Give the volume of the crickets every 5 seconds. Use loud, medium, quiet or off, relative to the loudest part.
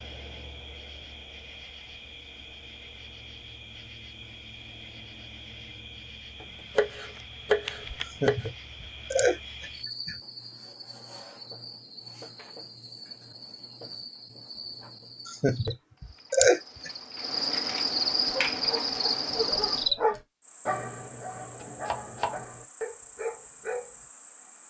quiet, quiet, quiet, loud, quiet.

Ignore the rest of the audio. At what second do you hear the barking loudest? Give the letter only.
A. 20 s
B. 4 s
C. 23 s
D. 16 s
A.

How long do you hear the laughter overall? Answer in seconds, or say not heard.
4 s.